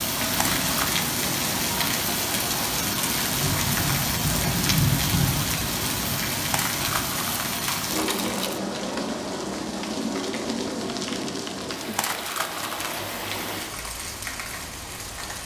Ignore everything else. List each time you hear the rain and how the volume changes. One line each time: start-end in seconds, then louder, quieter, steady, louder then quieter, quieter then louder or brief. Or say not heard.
0.0-15.4 quieter.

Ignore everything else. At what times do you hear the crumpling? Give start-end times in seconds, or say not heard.
0.3-0.9, 6.5-8.6, 11.9-13.0.